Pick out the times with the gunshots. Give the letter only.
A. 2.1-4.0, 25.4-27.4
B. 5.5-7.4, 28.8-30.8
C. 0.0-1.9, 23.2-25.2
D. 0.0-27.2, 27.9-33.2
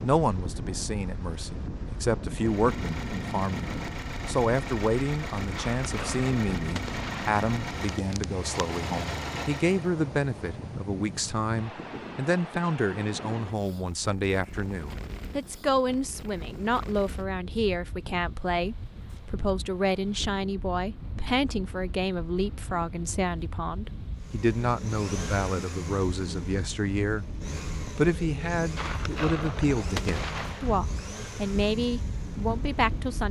B.